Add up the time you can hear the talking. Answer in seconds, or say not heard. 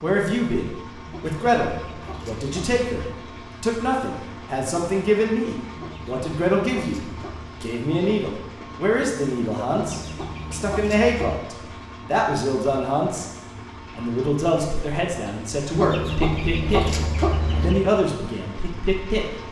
19 s.